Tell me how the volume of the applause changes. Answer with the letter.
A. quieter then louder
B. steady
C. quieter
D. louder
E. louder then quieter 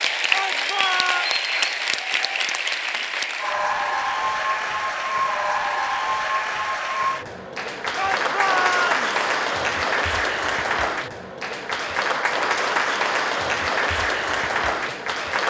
B.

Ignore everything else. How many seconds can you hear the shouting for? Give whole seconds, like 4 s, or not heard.
2 s.